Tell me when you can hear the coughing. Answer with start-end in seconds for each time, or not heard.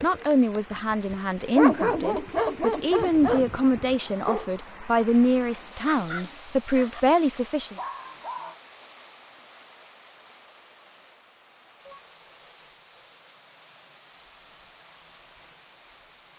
not heard.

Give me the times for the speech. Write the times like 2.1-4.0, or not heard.
0.0-7.8.